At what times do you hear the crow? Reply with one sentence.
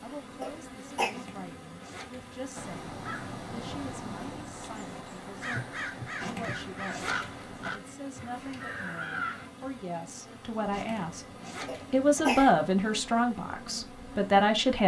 You can hear the crow from 2.5 to 9.5 s.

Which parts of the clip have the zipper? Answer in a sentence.
The zipper can be heard from 1.1 to 2.6 s, from 6.2 to 7.7 s and from 10.7 to 12.2 s.